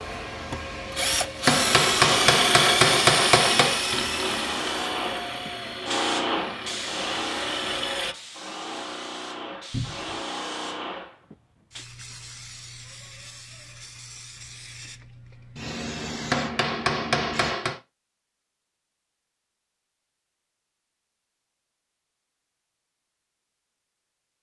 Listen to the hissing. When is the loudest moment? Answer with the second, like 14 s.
6 s.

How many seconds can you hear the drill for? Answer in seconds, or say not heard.
8 s.